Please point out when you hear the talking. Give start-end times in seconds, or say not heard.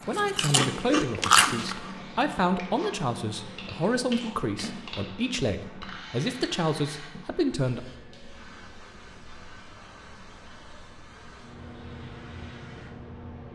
0.0-7.8.